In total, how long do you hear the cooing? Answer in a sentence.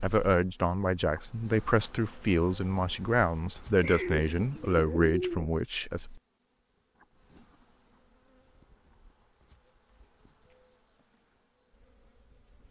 You can hear the cooing for 2 seconds altogether.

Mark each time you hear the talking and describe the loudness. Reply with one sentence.
The talking can be heard from 0.0 to 6.0 s, at a steady volume.